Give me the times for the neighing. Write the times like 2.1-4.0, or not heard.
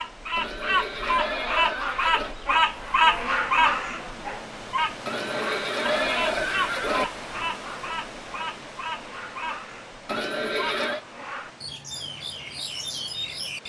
0.3-2.4, 5.0-7.0, 10.1-11.0.